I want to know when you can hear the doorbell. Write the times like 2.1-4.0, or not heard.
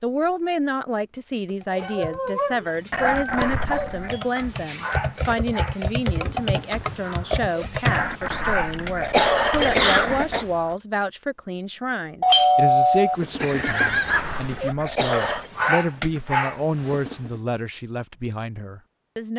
3.4-4.0, 12.2-14.2.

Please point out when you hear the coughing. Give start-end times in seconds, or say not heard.
2.9-4.2, 7.8-10.4, 13.7-15.5.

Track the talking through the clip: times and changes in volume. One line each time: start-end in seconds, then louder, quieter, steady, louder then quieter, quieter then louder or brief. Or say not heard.
0.0-19.3 steady.